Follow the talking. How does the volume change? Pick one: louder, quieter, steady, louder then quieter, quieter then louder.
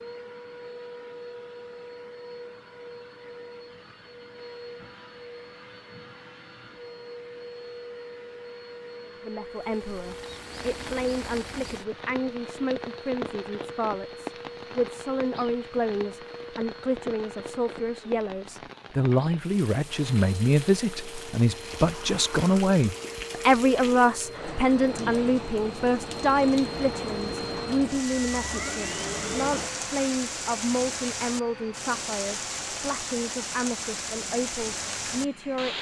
louder then quieter.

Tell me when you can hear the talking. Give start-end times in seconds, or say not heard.
9.2-35.7.